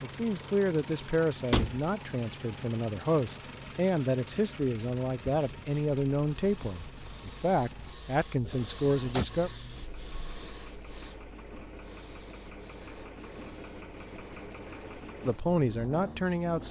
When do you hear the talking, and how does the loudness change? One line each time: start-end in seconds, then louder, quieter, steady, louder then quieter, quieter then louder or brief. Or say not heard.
0.0-9.5 steady
15.2-16.6 brief.